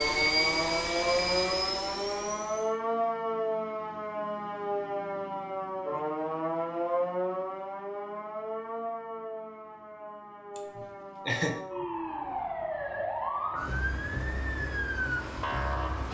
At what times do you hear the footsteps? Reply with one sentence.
The footsteps can't be heard in this clip.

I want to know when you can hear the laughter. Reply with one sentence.
You can hear the laughter from 10.6 to 11.6 s.